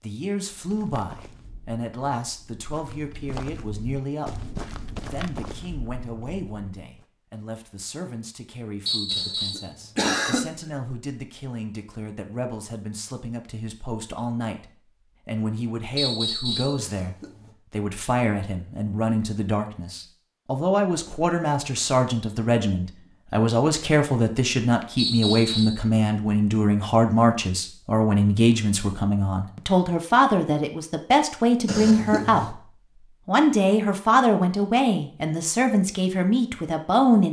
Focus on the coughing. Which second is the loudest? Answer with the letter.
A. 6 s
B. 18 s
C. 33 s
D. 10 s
D.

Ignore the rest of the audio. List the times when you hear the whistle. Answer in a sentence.
The whistle can be heard from 8.8 to 9.7 s, from 15.9 to 16.8 s and from 24.9 to 25.8 s.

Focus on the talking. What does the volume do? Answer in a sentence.
The volume of the talking goes up.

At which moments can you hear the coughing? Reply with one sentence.
You can hear the coughing from 9.1 to 10.5 s, from 16.8 to 17.6 s and from 31.6 to 32.5 s.